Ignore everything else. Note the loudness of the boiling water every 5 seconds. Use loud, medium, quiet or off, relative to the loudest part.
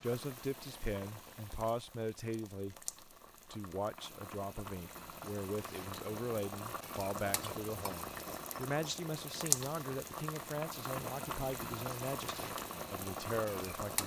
medium, loud, loud.